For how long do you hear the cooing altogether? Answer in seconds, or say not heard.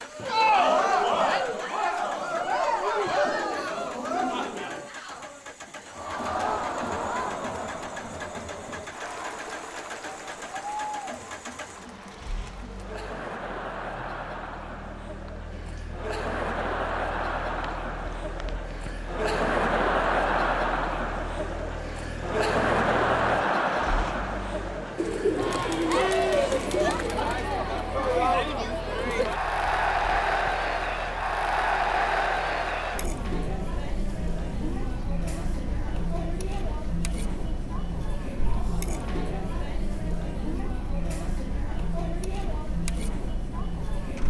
4 s.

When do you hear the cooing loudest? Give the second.
25 s.